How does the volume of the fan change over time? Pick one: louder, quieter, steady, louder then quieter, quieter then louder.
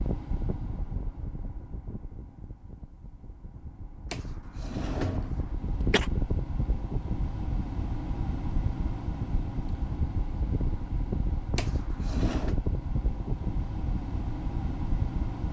louder.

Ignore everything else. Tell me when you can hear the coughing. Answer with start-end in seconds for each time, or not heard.
5.5-6.1.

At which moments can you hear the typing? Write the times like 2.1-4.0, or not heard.
not heard.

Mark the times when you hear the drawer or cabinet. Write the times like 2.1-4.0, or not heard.
4.1-5.5, 11.6-12.6.